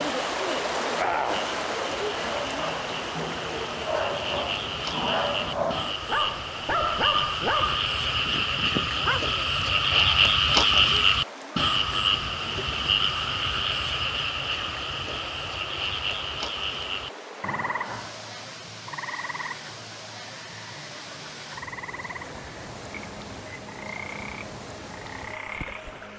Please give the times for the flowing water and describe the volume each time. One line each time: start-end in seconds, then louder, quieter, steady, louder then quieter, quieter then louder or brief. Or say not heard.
0.0-26.1 quieter.